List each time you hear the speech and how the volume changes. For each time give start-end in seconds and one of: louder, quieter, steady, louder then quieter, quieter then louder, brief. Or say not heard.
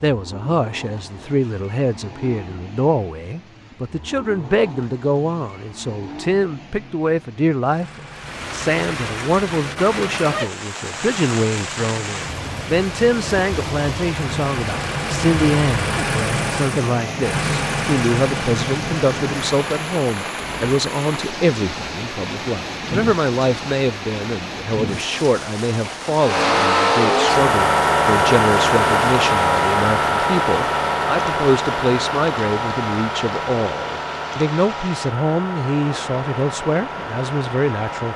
0.0-38.1 steady.